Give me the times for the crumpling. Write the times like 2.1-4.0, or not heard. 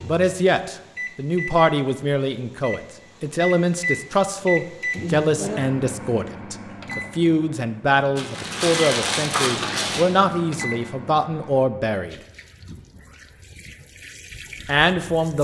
8.2-10.1.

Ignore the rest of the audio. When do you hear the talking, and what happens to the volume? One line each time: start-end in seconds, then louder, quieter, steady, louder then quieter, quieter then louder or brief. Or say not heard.
0.0-12.2 steady
14.7-15.3 brief.